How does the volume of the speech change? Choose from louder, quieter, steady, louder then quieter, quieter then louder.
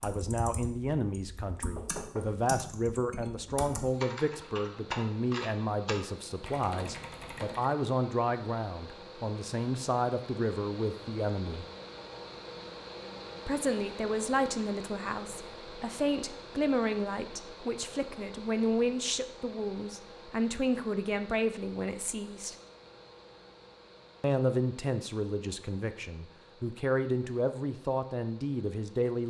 steady.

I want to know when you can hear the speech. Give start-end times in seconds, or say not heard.
0.0-11.7, 13.4-22.6, 24.2-29.2.